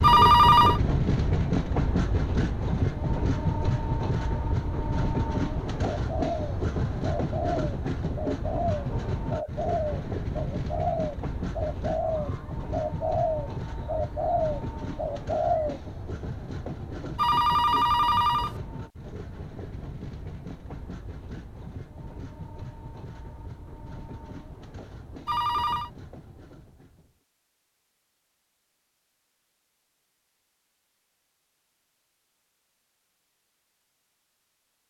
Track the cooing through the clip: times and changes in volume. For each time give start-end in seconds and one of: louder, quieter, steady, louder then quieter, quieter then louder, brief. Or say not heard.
6.0-15.8 steady.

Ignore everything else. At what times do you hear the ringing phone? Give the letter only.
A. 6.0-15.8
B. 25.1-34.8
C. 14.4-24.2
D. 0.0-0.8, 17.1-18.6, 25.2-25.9
D.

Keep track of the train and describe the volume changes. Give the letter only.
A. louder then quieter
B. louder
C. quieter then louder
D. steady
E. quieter
E.